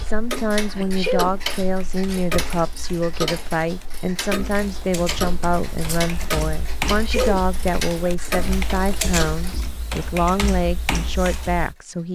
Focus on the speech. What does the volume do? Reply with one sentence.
The volume of the speech stays about the same.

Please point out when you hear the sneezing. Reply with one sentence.
The sneezing can be heard from 0.8 to 1.4 s and from 6.8 to 7.5 s.